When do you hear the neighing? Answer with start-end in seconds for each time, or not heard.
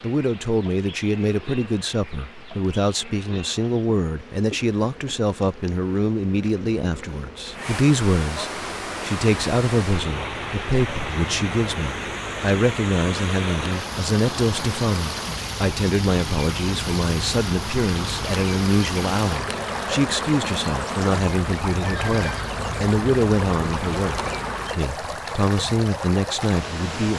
21.9-22.5.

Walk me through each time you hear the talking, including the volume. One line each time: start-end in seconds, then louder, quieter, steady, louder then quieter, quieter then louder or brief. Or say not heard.
0.0-27.1 steady.